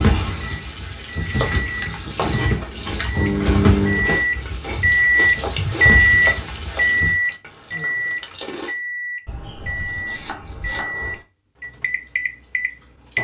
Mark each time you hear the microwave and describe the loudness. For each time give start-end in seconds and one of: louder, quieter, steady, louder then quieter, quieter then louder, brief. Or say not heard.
0.0-13.2 louder then quieter.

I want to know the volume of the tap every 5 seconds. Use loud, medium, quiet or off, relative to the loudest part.
loud, loud, off.